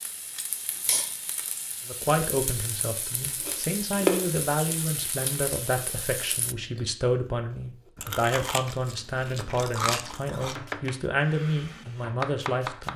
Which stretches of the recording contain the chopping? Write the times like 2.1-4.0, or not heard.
10.3-12.9.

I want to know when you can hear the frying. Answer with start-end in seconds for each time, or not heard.
0.0-6.5.